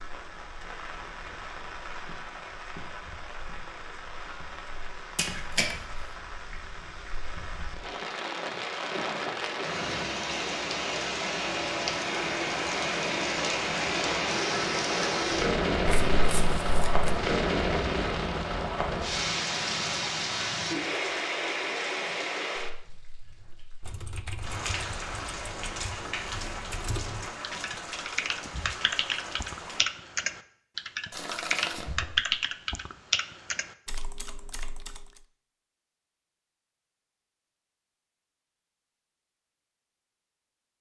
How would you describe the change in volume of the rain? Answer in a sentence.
The loudness of the rain goes up, then down.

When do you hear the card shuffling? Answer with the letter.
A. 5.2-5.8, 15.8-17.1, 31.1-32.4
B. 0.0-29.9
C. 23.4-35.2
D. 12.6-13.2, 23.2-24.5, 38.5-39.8
A.